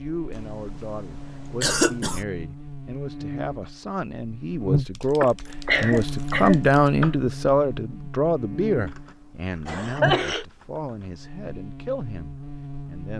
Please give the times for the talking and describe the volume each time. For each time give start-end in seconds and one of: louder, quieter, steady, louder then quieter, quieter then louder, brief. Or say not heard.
0.0-13.1 louder then quieter.